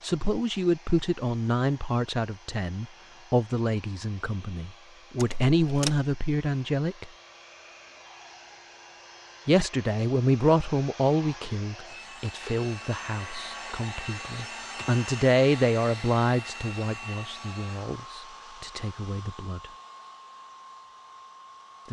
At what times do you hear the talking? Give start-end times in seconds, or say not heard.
0.0-7.1, 9.4-19.6.